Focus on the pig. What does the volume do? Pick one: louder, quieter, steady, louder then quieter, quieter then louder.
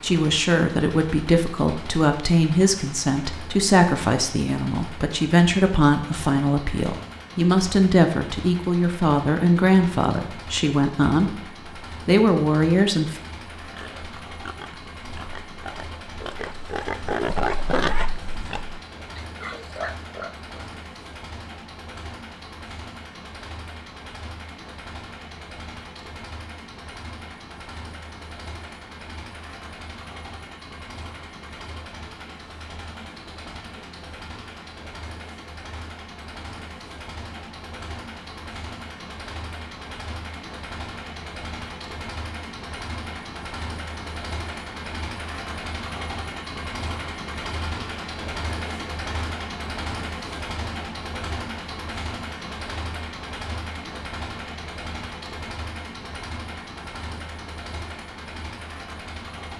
louder then quieter.